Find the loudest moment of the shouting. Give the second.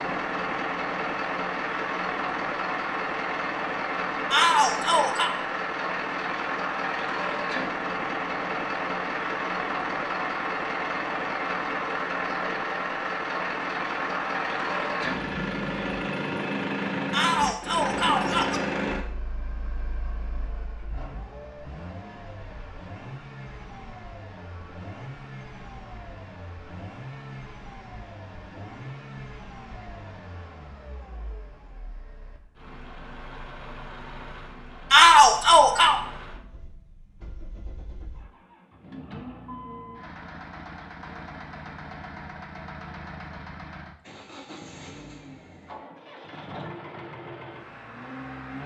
35 s.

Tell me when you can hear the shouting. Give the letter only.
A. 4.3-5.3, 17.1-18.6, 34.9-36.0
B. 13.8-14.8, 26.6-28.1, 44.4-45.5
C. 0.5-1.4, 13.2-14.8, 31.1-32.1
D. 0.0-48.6
A.